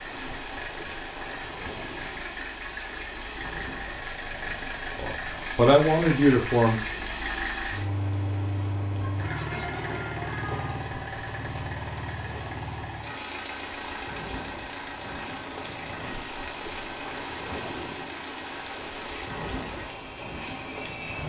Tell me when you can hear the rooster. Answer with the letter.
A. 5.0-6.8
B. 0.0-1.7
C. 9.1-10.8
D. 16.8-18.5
C.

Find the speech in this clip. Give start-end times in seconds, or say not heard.
5.0-6.8.